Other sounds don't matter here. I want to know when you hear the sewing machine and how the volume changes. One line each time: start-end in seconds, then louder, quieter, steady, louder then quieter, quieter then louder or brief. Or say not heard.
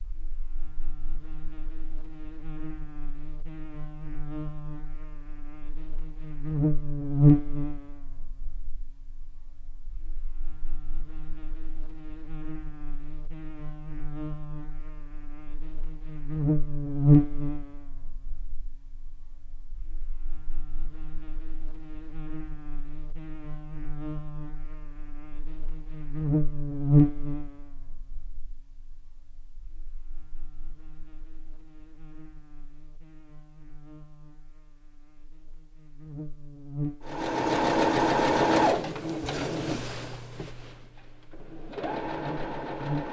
37.0-43.0 quieter then louder.